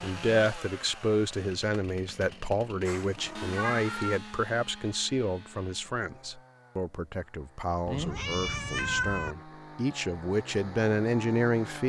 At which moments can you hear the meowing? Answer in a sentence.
You can hear the meowing from 2.9 to 4.2 s and from 7.8 to 9.3 s.